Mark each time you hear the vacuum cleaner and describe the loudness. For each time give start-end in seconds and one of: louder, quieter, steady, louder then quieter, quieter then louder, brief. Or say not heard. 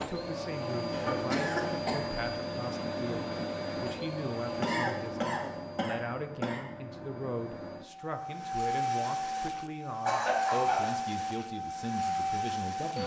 0.0-13.0 quieter then louder.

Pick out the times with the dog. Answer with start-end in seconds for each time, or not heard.
not heard.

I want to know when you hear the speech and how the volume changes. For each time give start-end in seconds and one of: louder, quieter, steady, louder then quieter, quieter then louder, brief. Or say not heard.
0.0-13.0 steady.